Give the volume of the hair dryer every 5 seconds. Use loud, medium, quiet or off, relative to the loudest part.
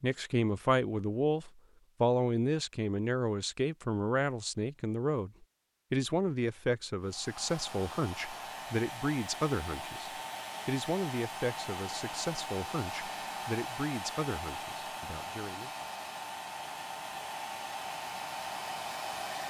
off, loud, loud, loud.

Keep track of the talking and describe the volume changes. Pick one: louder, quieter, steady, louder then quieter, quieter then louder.
quieter.